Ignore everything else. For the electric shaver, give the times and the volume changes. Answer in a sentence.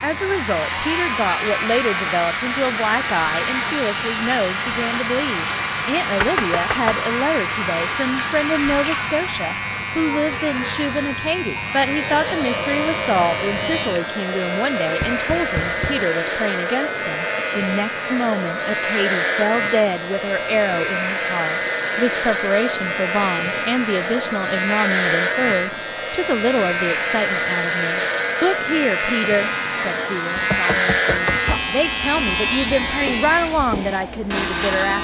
You can hear the electric shaver from 0.0 to 34.9 s, getting louder.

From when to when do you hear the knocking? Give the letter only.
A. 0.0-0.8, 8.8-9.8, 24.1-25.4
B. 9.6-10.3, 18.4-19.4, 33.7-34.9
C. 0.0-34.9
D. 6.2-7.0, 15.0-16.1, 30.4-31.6
D.